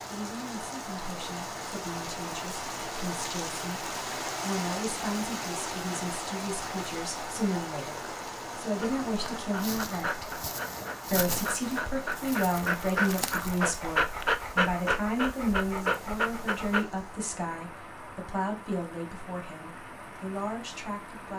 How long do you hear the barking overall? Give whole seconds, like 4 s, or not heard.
8 s.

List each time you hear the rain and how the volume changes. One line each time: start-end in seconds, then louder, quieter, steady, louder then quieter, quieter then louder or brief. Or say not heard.
0.0-21.3 quieter.